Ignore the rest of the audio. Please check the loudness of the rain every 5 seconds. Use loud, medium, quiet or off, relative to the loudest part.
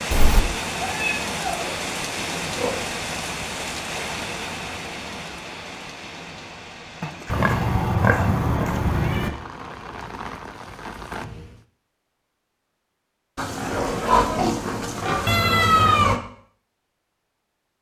loud, medium, medium, off.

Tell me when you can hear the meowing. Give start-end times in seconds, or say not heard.
0.1-1.8, 7.2-9.3, 15.2-16.2.